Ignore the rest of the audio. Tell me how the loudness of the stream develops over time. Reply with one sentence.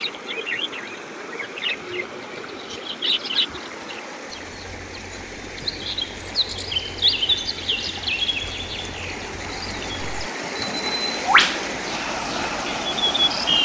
The loudness of the stream goes up.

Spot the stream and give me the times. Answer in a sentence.
You can hear the stream from 0.0 to 13.6 s.